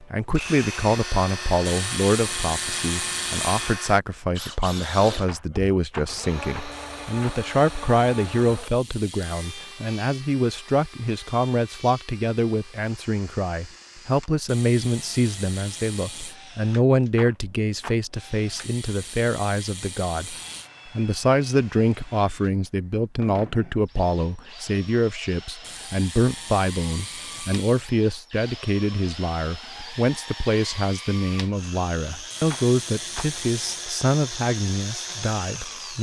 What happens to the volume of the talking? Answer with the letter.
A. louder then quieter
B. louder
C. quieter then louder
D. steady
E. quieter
D.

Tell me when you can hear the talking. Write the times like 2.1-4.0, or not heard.
0.0-20.4, 20.9-35.9.